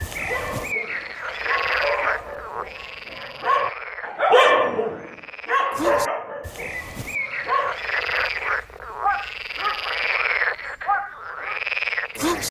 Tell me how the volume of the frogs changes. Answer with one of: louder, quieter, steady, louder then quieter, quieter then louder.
quieter then louder.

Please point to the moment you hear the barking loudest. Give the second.
4 s.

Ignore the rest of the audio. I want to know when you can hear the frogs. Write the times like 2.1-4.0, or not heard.
0.0-12.4.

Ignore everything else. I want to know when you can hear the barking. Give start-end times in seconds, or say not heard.
0.1-8.3, 9.0-11.7.